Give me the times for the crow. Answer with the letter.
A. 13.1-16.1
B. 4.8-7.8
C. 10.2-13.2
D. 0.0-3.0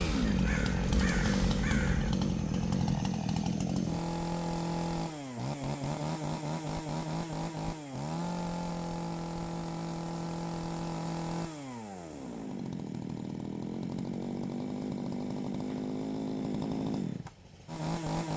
D.